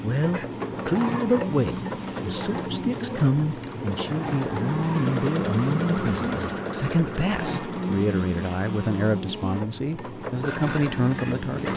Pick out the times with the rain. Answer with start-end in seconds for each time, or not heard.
not heard.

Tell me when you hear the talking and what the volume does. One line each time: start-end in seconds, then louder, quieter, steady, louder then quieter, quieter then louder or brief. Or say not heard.
0.0-11.7 steady.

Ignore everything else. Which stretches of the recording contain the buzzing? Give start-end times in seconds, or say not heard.
0.2-11.7.